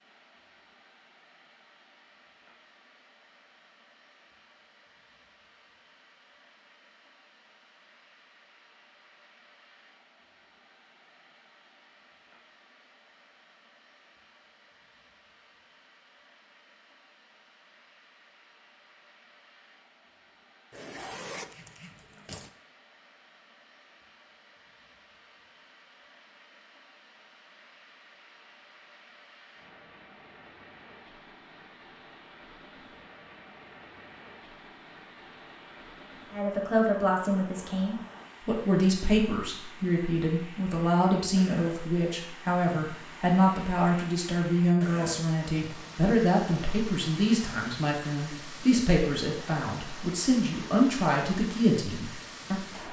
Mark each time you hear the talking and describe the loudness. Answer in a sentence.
The talking can be heard from 36.3 to 52.8 s, at a steady volume.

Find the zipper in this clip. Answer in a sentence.
The zipper can be heard from 20.7 to 22.5 s.